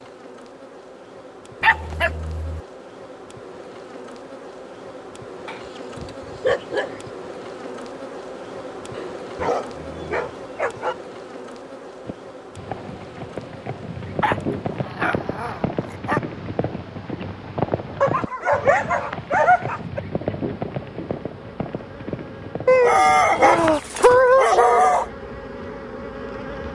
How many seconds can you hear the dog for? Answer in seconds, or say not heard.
11 s.